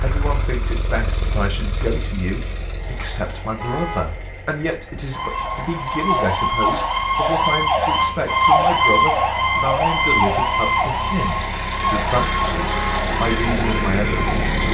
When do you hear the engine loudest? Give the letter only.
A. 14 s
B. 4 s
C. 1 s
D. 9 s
A.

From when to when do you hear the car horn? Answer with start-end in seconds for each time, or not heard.
3.5-4.0, 12.6-13.1.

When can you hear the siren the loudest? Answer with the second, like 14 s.
9 s.